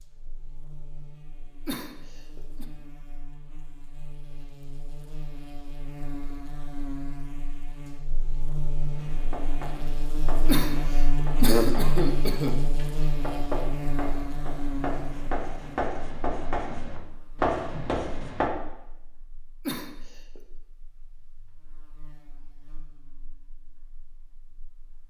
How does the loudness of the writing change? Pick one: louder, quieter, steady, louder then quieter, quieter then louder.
louder.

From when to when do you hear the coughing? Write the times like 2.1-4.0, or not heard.
1.6-2.6, 10.4-13.1, 19.6-20.4.